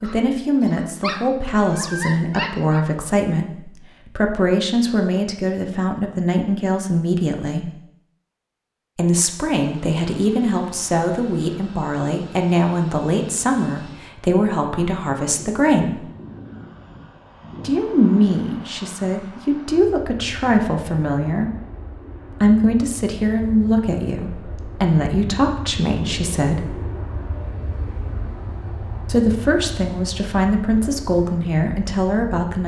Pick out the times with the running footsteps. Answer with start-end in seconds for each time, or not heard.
not heard.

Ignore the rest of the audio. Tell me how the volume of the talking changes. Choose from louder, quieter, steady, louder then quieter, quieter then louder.
steady.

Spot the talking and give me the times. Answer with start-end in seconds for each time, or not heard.
0.0-7.7, 8.9-15.9, 17.6-21.6, 22.4-26.8, 29.1-32.6.